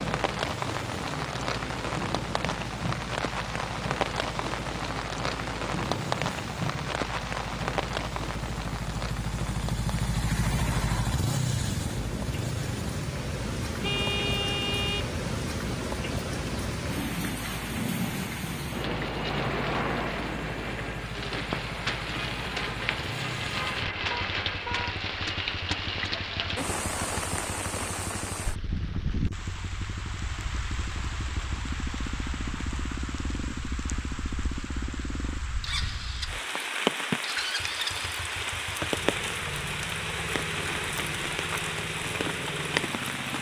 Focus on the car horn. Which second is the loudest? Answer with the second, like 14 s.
14 s.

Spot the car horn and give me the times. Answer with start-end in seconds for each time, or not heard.
13.8-15.1, 24.1-24.9.